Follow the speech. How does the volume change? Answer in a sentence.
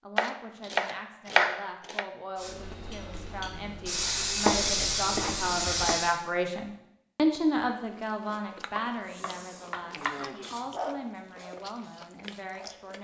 The loudness of the speech goes up, then down.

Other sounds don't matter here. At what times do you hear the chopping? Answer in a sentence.
You can hear the chopping from 0.1 to 2.0 s, from 4.5 to 6.0 s and from 8.7 to 10.6 s.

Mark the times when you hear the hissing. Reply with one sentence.
You can hear the hissing from 2.4 to 6.2 s and from 9.0 to 12.9 s.